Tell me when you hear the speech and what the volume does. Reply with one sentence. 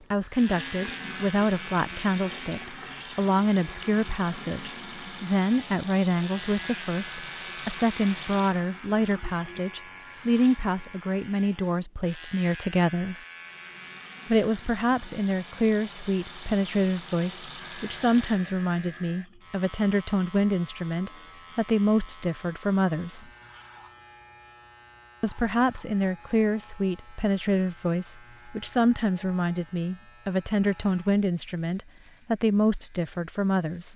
You can hear the speech from 0.1 to 13.2 s, at a steady volume; from 14.2 to 23.3 s, at a steady volume; and from 25.2 to 33.9 s, at a steady volume.